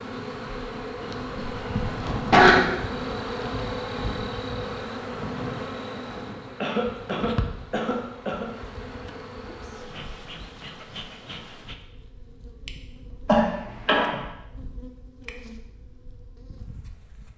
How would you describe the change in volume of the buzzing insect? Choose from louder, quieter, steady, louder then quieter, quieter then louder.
quieter.